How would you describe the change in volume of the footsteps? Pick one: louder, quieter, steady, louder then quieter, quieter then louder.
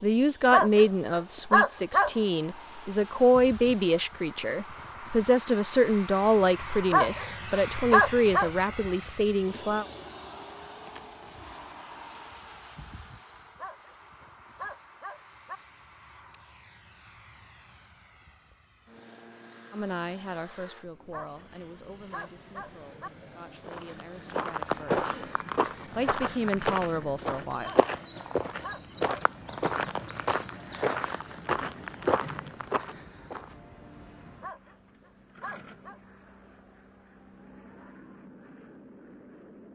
steady.